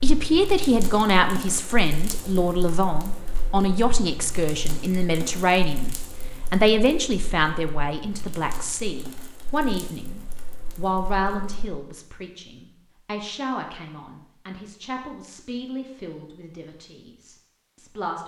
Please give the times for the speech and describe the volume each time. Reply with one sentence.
You can hear the speech from 0.0 to 18.2 s, getting quieter.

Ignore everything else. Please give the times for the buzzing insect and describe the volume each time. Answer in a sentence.
The buzzing insect can't be heard in this clip.